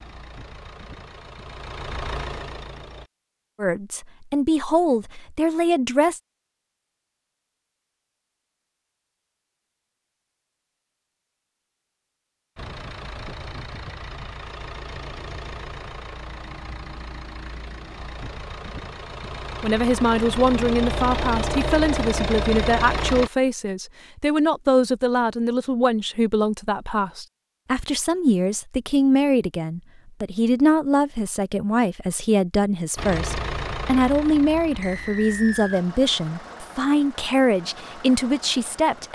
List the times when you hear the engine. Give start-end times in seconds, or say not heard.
0.0-3.1, 12.6-23.3, 33.0-39.1.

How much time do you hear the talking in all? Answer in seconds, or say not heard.
22 s.